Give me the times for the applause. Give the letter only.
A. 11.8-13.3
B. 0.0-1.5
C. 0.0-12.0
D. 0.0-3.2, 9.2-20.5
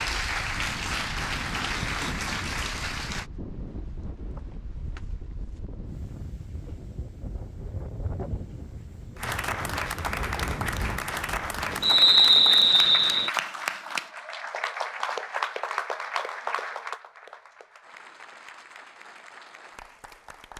D.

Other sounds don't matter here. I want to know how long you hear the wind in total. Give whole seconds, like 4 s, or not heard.
12 s.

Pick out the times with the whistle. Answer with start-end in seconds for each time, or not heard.
11.8-13.3.